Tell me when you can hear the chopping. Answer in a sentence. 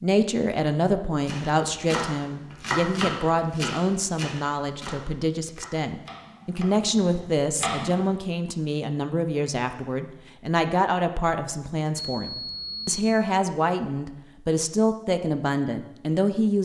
You can hear the chopping from 1.2 to 8.1 s.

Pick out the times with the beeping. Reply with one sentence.
You can hear the beeping from 11.9 to 13.1 s.